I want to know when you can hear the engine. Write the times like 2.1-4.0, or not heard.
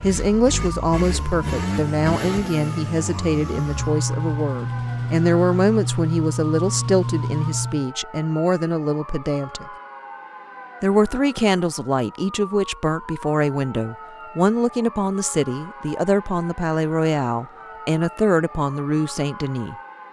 0.0-7.8.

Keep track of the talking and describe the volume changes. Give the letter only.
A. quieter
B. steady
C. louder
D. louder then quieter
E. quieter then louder
B.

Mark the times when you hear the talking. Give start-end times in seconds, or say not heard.
0.0-9.7, 10.8-19.8.